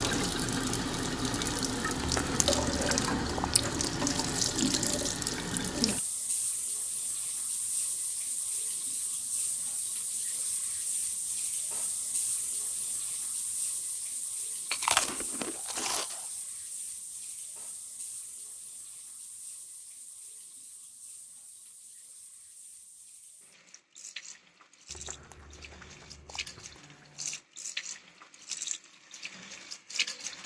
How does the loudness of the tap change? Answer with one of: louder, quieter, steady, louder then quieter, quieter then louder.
quieter then louder.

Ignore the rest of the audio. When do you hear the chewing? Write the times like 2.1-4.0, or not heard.
1.9-4.5, 14.7-16.2, 24.9-27.4.